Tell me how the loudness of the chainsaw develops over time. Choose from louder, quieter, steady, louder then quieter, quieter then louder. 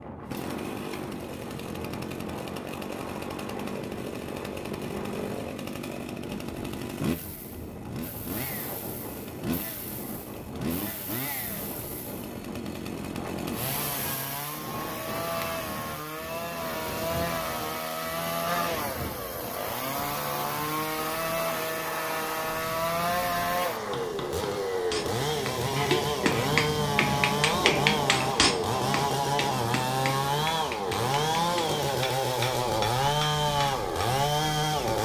louder.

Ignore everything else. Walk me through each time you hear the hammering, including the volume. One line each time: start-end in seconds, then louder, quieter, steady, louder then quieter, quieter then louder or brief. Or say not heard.
23.7-34.0 louder then quieter.